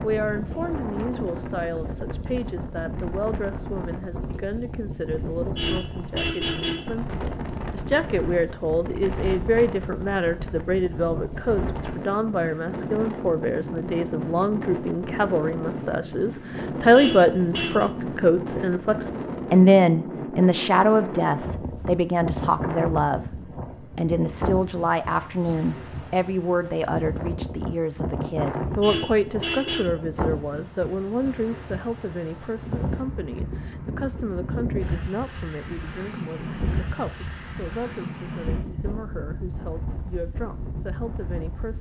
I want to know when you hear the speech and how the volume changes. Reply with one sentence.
The speech can be heard from 0.0 to 23.2 s, getting louder; and from 23.9 to 41.7 s, getting quieter.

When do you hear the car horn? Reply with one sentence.
You can hear the car horn from 5.2 to 7.0 s, from 16.8 to 17.9 s and from 28.6 to 29.9 s.